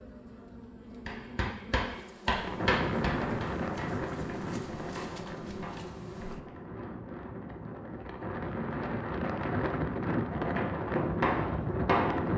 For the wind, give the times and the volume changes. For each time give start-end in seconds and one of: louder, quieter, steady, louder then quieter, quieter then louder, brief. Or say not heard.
2.3-12.3 quieter then louder.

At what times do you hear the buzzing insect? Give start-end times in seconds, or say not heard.
0.0-6.5.